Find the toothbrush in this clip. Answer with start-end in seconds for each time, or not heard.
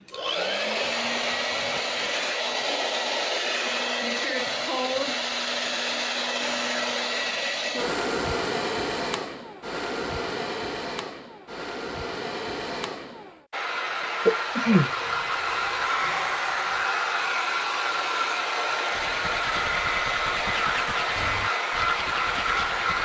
18.9-22.9.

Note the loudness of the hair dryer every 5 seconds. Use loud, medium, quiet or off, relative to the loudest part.
loud, loud, medium, loud, loud.